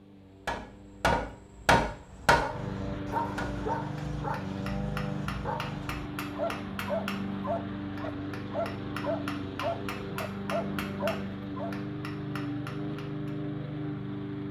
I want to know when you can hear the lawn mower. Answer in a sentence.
The lawn mower can be heard from 0.0 to 14.4 s.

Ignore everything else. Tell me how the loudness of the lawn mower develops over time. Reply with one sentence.
The volume of the lawn mower goes up.